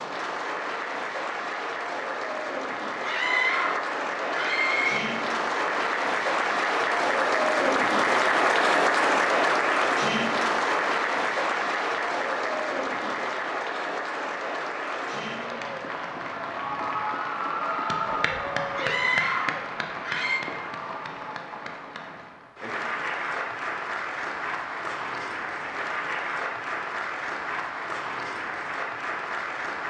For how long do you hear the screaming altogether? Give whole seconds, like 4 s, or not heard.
4 s.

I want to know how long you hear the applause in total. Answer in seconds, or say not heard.
30 s.